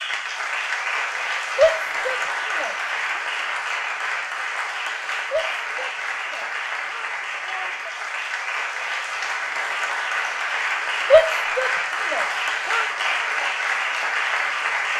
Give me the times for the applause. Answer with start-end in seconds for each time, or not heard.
0.0-14.9.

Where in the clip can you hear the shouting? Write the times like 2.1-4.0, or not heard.
1.6-2.8, 5.3-7.9, 11.1-12.9.